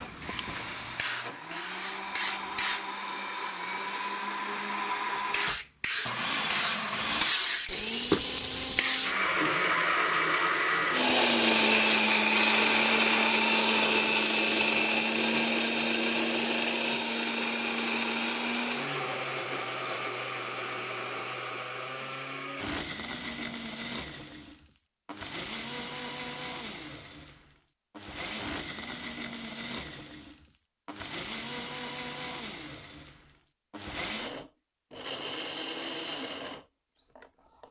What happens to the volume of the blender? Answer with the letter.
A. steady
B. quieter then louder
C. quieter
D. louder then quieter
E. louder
D.